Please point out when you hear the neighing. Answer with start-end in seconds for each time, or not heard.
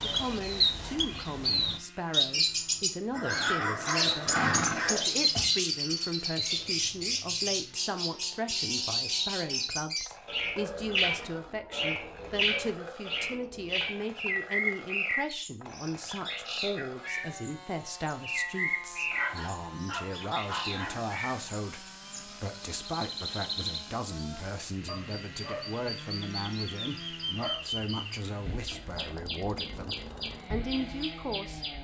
4.0-5.5.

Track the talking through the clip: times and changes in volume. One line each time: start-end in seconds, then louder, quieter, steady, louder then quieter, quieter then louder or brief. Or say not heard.
0.0-31.6 steady.